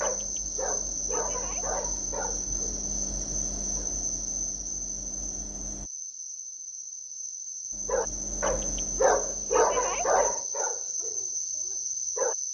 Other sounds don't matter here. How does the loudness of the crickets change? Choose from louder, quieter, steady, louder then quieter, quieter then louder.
quieter then louder.